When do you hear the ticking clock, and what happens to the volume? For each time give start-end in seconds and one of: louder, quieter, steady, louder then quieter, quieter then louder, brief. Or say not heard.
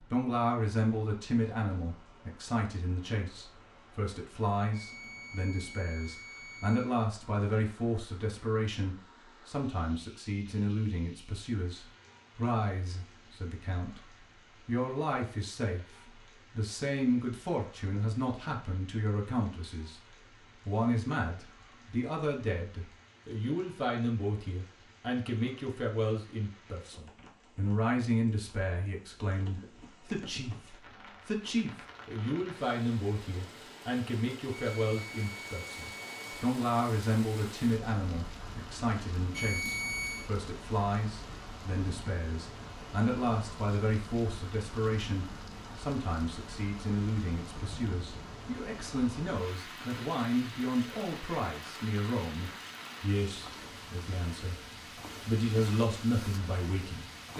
not heard.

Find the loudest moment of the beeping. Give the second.
40 s.